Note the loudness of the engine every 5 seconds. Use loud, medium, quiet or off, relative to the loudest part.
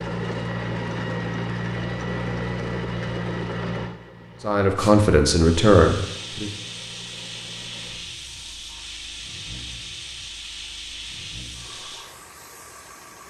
loud, quiet, quiet.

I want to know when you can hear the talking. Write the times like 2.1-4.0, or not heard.
4.4-6.5.